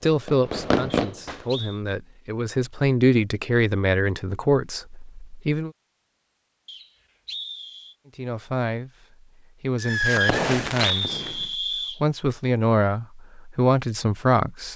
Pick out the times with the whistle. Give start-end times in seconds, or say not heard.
0.9-1.8, 6.7-8.0, 10.2-12.0.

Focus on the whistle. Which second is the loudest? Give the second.
11 s.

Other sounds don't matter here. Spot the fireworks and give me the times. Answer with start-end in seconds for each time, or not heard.
0.0-1.6, 9.8-11.6.